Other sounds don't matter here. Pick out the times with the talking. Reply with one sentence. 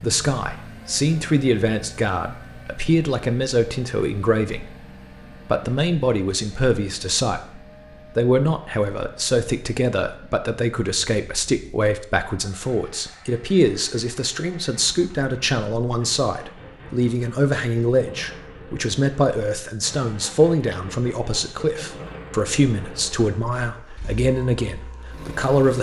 The talking can be heard from 0.0 to 4.8 s and from 5.5 to 25.7 s.